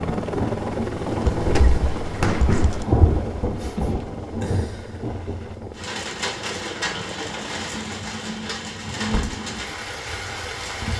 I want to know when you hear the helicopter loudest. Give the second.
1 s.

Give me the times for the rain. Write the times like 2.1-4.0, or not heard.
0.0-10.9.